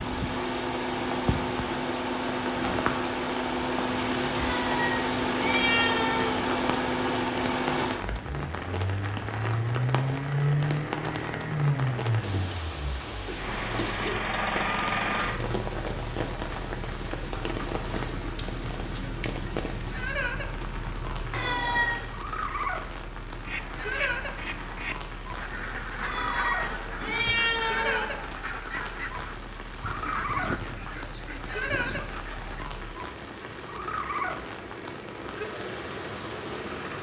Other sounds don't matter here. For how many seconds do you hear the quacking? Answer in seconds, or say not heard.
9 s.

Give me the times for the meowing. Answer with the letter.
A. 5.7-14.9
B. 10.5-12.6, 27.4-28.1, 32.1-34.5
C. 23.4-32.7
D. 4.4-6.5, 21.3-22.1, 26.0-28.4
D.